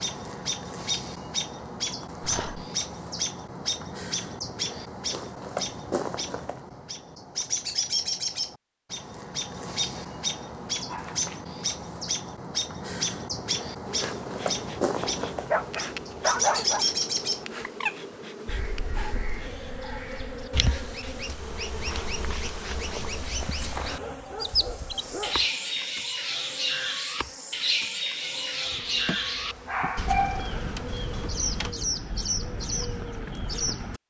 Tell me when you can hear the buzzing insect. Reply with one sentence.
You can hear the buzzing insect from 13.8 to 31.8 s.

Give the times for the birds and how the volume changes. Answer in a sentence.
You can hear the birds from 0.0 to 34.0 s, at a steady volume.